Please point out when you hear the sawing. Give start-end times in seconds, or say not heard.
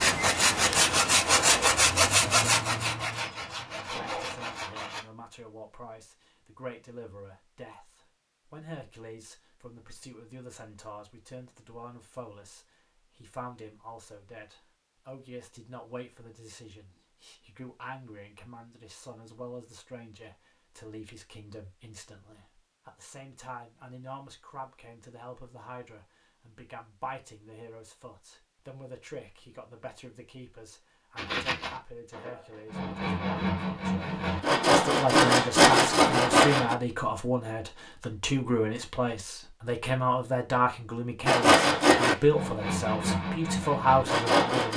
0.0-5.0, 31.1-36.8, 41.2-44.7.